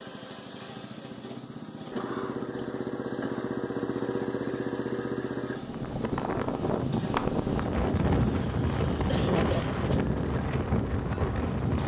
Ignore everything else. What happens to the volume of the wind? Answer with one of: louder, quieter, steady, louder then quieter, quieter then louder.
steady.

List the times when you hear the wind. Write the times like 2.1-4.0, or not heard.
5.5-11.8.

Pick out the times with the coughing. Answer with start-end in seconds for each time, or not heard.
1.9-3.5, 9.1-10.1.